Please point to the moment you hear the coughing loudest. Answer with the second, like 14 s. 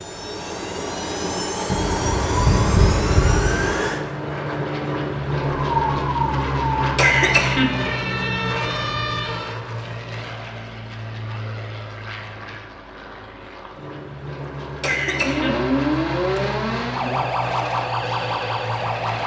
7 s.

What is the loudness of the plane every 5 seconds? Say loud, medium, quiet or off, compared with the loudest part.
loud, loud, medium, medium.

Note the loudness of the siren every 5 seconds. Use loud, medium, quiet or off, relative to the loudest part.
off, loud, off, loud.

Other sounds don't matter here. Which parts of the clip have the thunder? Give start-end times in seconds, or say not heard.
1.7-3.7.